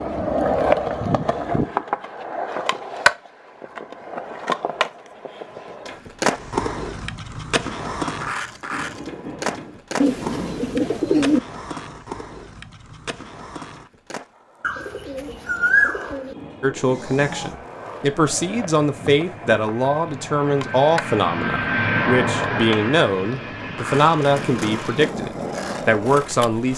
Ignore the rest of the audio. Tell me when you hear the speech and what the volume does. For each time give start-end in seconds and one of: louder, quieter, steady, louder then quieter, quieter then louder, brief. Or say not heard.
16.6-26.7 steady.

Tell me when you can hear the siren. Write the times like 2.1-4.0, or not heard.
not heard.